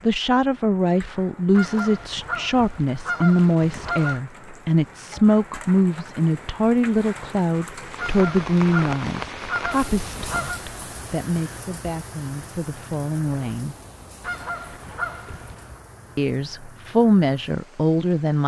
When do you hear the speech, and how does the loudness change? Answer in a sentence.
You can hear the speech from 0.0 to 13.8 s, getting quieter; and briefly from 16.1 to 18.4 s.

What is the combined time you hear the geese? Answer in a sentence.
You can hear the geese for 7 seconds altogether.